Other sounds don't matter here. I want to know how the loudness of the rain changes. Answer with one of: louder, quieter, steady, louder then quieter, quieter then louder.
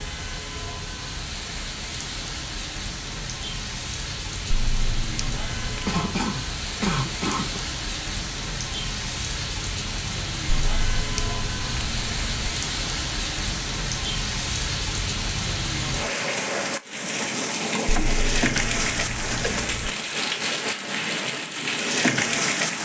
louder.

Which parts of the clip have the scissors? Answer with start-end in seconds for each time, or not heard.
4.5-6.0, 10.7-12.5, 17.9-19.9.